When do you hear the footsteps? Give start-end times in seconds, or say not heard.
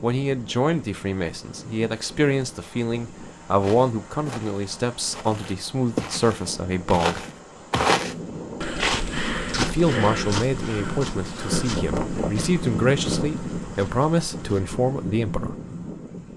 3.6-14.6.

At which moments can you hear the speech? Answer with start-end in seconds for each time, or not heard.
0.0-7.2, 9.6-15.6.